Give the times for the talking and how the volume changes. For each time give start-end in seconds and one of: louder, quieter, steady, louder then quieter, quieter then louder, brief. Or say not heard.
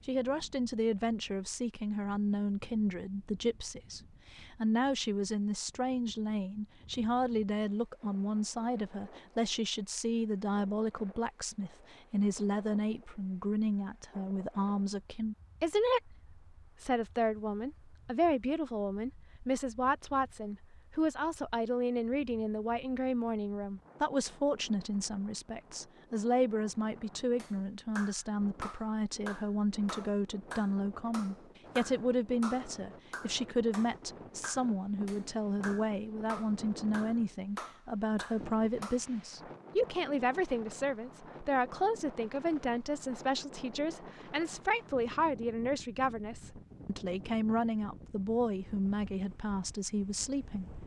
0.1-50.7 steady.